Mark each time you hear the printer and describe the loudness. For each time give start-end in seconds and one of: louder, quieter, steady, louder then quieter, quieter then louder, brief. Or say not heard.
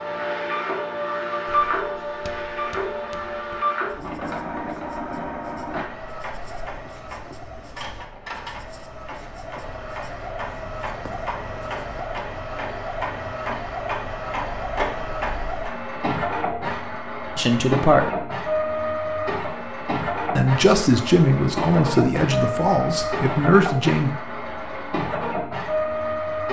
0.0-26.4 quieter then louder.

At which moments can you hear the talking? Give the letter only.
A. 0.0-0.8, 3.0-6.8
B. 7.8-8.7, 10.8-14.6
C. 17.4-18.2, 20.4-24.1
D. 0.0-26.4
C.